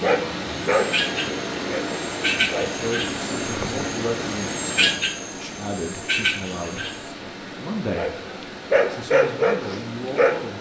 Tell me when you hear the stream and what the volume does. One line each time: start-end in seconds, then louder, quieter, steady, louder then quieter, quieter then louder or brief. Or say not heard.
0.0-10.5 quieter.